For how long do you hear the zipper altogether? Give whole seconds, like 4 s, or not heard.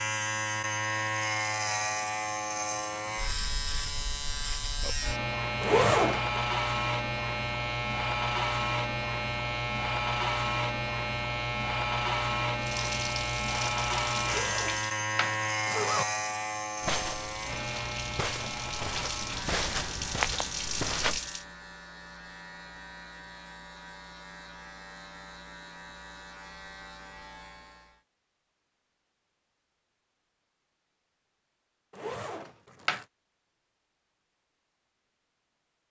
4 s.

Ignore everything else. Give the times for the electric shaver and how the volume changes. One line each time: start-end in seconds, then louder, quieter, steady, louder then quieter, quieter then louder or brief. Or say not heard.
0.0-28.0 quieter.